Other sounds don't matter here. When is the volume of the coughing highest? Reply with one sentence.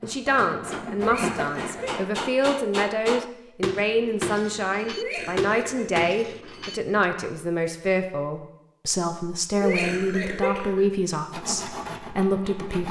The volume of the coughing peaks at 10 seconds.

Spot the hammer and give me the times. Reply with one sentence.
The hammer can be heard from 0.0 to 7.0 s.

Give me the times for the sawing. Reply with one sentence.
The sawing can be heard from 0.0 to 2.0 s and from 11.3 to 12.8 s.